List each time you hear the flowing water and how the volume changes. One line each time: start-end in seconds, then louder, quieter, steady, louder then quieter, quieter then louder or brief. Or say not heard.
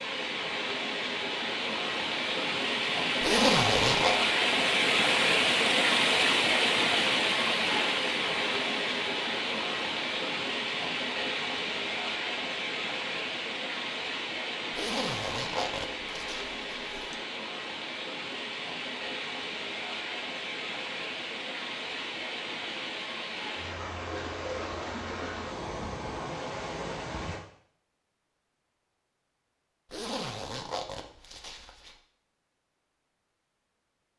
0.0-27.4 quieter.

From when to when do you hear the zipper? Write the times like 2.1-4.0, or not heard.
3.2-4.2, 14.7-17.1, 29.9-31.9.